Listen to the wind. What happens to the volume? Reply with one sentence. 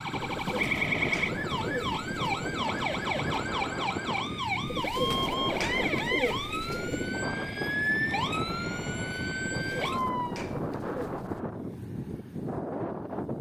The volume of the wind stays about the same.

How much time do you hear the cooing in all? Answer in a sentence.
You can hear the cooing for 7 seconds altogether.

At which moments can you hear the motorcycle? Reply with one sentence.
The motorcycle can't be heard in this clip.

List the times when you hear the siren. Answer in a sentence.
You can hear the siren from 0.0 to 10.4 s.